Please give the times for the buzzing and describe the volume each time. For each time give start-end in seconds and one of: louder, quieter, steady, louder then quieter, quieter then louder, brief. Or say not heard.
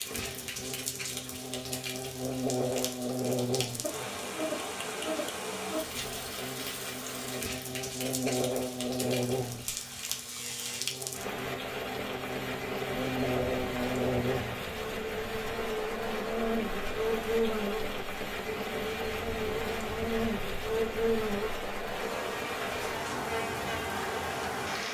0.0-24.8 steady.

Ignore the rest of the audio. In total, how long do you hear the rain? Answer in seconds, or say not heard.
25 s.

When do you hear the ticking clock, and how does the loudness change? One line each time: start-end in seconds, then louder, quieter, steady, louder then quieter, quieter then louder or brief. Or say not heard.
not heard.